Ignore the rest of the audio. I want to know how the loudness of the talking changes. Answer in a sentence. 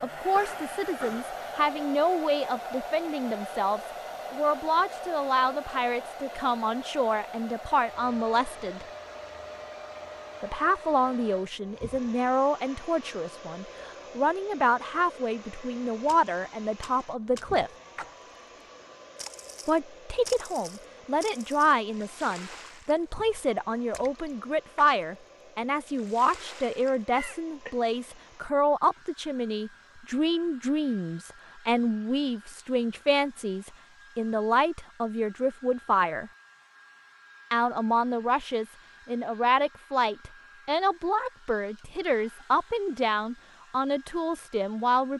The loudness of the talking stays about the same.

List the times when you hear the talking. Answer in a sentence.
You can hear the talking from 0.0 to 8.8 s, from 10.4 to 17.7 s, from 19.6 to 36.3 s and from 37.5 to 45.1 s.